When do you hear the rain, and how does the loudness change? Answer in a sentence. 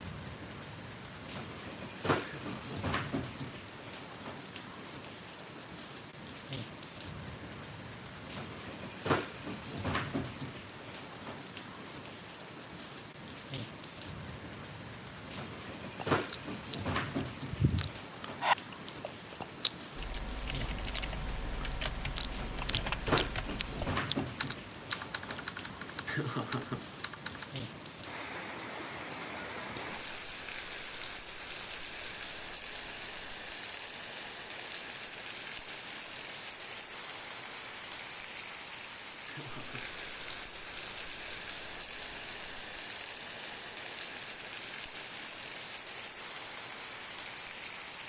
The rain can be heard from 0.0 to 48.0 s, at a steady volume.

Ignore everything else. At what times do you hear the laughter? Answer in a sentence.
You can hear the laughter from 2.2 to 2.8 s, from 26.1 to 26.9 s and from 39.2 to 40.0 s.